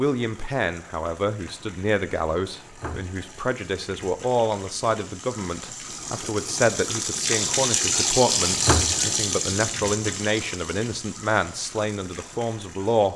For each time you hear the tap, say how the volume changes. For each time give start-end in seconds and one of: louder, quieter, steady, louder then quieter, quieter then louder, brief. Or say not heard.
0.0-13.1 louder then quieter.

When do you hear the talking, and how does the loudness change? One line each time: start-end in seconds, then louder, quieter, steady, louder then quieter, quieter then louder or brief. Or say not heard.
0.0-13.1 steady.